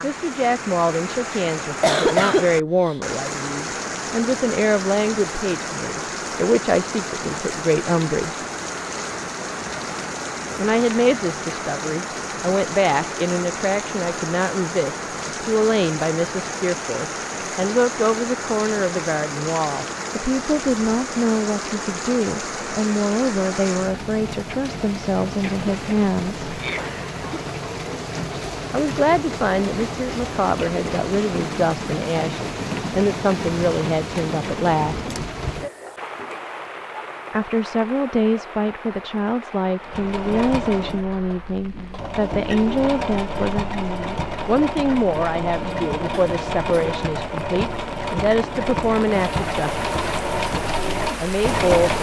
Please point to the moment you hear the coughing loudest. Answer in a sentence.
The loudest moment of the coughing is at 2 seconds.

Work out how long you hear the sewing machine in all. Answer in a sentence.
You can hear the sewing machine for 12 seconds altogether.